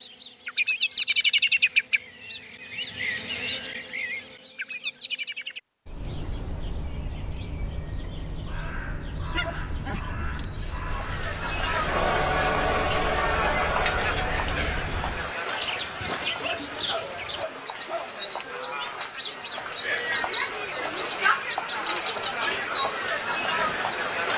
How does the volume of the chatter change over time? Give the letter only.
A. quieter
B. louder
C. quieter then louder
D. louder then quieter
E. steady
C.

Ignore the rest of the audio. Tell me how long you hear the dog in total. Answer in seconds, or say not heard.
4 s.